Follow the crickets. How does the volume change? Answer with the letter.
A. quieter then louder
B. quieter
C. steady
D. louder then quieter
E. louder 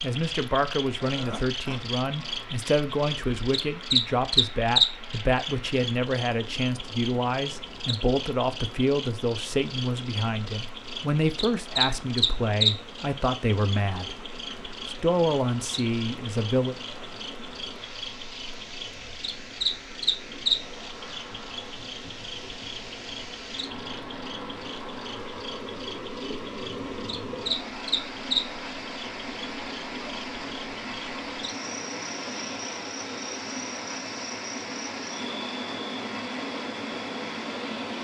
B.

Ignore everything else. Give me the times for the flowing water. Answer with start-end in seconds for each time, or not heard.
0.0-37.9.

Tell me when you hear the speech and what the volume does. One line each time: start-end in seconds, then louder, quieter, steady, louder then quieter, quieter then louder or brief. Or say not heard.
0.0-14.2 steady
14.8-16.8 brief.